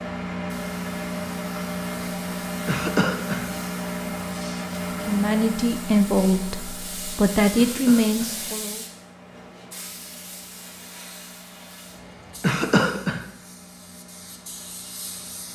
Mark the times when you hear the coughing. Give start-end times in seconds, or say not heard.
2.6-3.5, 7.5-8.3, 12.4-13.2.